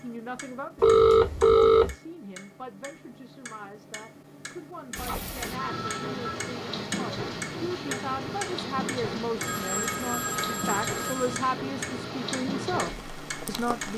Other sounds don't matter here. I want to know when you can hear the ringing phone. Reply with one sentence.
You can hear the ringing phone from 0.8 to 1.9 s, from 5.0 to 6.4 s and from 9.4 to 11.3 s.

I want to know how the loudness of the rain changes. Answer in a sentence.
The volume of the rain stays about the same.